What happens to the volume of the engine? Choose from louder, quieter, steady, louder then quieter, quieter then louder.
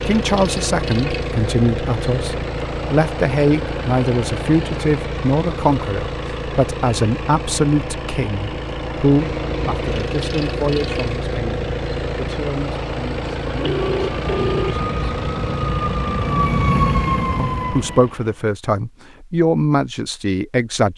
steady.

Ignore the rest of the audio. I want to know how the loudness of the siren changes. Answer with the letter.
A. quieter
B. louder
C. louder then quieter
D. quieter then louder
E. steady
B.